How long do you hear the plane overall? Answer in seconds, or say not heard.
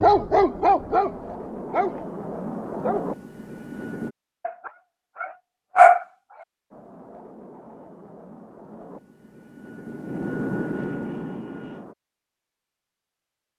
9 s.